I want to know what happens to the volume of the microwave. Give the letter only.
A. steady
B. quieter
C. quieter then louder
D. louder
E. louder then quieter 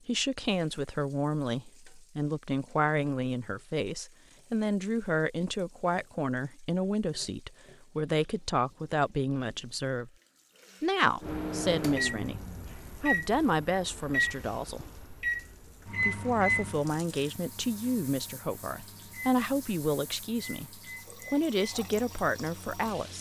B.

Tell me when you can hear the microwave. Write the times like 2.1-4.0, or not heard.
11.2-23.1.